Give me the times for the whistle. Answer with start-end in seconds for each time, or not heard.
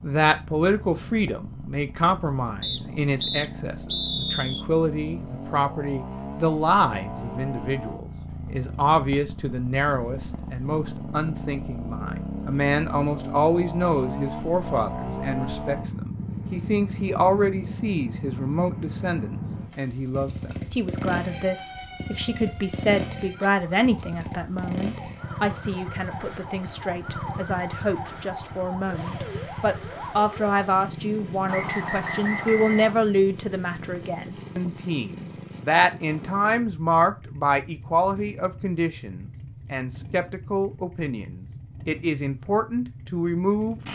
2.6-4.7, 31.4-33.0.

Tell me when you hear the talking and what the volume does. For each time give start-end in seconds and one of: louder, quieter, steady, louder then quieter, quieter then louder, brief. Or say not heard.
0.0-43.9 steady.